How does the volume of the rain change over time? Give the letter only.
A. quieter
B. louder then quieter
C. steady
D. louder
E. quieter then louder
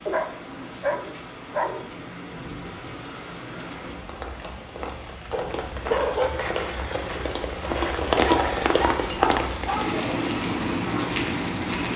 D.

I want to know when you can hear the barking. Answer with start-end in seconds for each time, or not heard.
0.1-1.9, 5.3-6.3, 8.2-10.0.